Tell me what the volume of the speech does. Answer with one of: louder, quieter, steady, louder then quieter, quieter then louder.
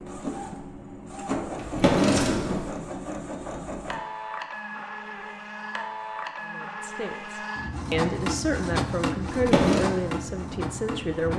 louder then quieter.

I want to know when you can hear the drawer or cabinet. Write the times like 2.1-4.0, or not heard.
1.6-2.6, 9.2-9.9.